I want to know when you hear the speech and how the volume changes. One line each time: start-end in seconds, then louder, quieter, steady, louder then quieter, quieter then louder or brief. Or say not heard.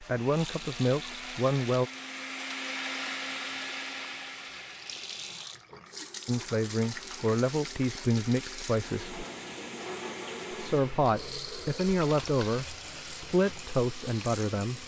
0.0-1.9 brief
6.2-9.2 brief
10.5-14.8 steady.